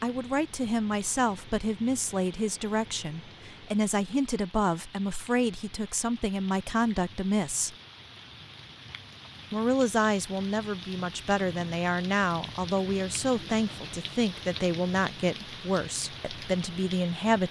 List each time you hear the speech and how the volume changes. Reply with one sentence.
The speech can be heard from 0.0 to 7.8 s, at a steady volume; and from 9.5 to 17.4 s, at a steady volume.